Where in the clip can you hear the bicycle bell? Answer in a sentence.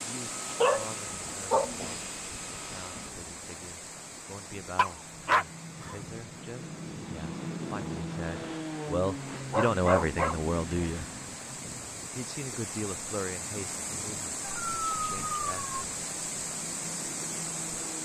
You can't hear the bicycle bell here.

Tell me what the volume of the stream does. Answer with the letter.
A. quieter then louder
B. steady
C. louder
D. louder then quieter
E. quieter
A.